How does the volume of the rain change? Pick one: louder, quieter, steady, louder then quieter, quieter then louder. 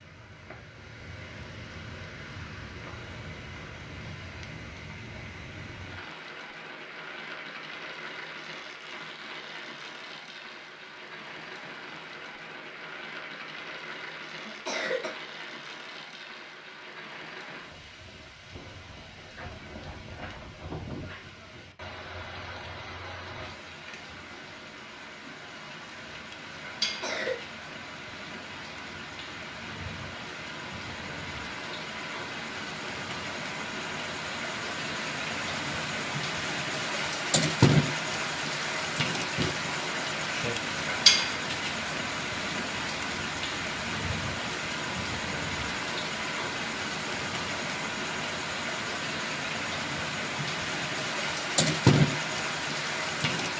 louder.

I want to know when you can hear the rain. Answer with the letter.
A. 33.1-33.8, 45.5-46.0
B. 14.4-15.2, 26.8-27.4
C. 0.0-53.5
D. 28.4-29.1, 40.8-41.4
C.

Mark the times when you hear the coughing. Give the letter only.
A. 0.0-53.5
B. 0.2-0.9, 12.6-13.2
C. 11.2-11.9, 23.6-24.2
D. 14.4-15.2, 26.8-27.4
D.